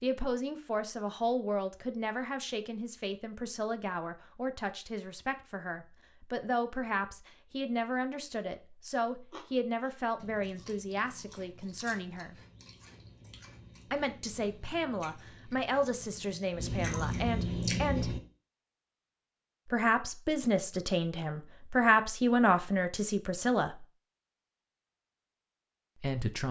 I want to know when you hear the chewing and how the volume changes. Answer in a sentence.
The chewing can be heard from 9.3 to 18.2 s, getting louder.